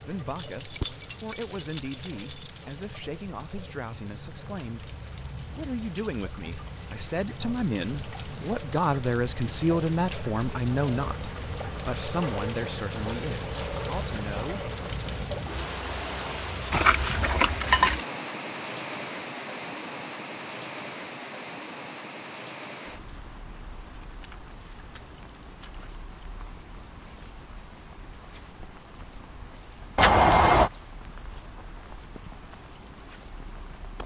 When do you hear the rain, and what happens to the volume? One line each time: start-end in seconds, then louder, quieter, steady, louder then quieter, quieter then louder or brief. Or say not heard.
0.0-34.0 louder then quieter.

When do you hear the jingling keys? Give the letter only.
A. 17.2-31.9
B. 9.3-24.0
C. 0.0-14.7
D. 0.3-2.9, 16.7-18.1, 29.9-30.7
D.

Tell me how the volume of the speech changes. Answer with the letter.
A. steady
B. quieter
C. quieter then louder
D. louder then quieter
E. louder
D.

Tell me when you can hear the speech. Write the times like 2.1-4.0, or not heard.
0.0-14.7.